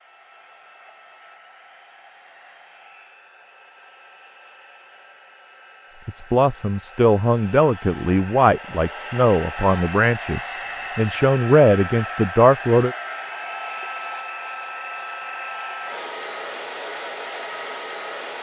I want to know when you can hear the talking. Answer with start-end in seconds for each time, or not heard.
6.0-12.9.